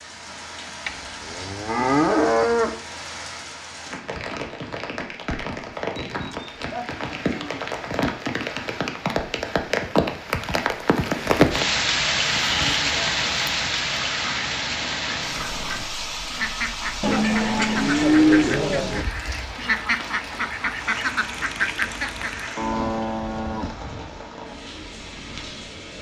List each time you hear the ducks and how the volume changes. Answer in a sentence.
You can hear the ducks from 13.8 to 22.6 s, getting louder.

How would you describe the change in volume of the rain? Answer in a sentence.
The loudness of the rain goes up, then down.